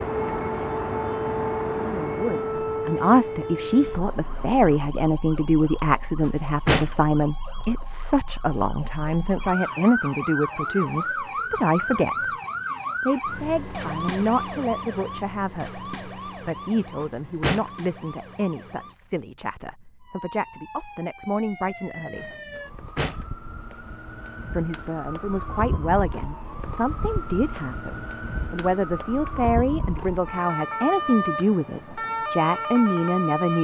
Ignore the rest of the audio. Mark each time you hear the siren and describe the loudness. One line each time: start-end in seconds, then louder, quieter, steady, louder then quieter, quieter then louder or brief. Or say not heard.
0.0-33.5 quieter then louder.